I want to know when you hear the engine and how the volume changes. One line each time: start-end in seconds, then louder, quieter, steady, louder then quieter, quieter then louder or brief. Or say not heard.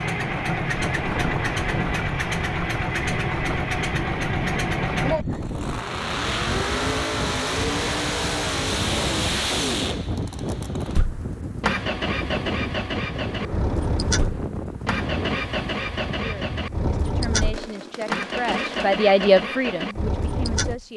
0.0-20.9 steady.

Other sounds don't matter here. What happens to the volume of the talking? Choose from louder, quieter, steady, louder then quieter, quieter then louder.
louder then quieter.